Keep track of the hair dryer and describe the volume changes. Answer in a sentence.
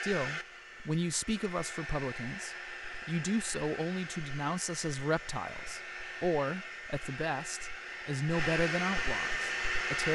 The loudness of the hair dryer goes up.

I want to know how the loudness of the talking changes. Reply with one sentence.
The loudness of the talking stays about the same.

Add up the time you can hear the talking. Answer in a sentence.
You can hear the talking for 10 seconds altogether.